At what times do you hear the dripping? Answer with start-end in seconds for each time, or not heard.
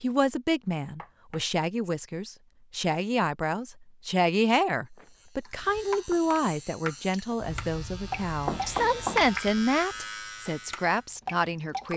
5.5-11.9.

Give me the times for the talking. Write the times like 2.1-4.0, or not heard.
0.0-11.9.